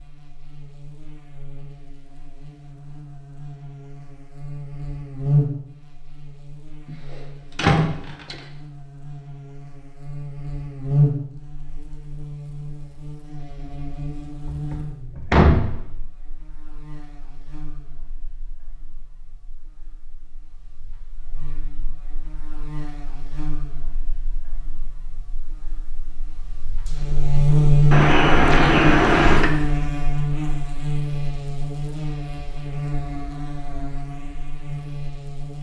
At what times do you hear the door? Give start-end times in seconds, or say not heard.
7.5-8.3, 14.4-15.8, 27.9-29.5.